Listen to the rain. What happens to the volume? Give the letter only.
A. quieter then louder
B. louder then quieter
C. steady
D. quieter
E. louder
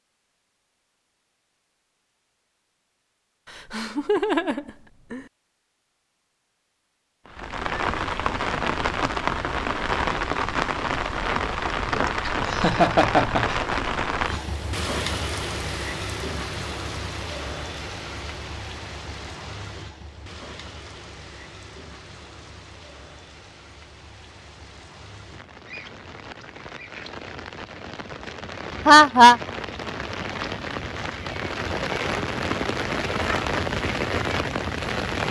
A.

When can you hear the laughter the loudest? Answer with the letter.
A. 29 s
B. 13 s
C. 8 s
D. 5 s
A.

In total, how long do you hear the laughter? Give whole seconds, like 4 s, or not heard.
4 s.